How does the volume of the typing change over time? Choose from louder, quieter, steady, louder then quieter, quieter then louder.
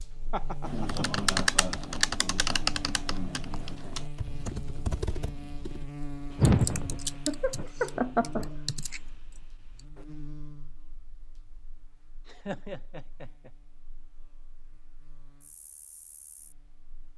quieter.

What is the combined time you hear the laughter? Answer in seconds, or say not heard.
4 s.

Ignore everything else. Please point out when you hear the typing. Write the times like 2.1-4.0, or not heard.
0.7-10.1.